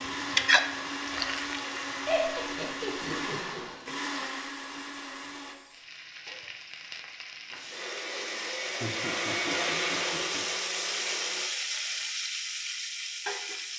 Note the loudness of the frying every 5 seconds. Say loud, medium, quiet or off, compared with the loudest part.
loud, medium, loud.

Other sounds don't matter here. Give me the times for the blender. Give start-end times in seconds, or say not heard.
0.0-5.5, 7.5-11.4.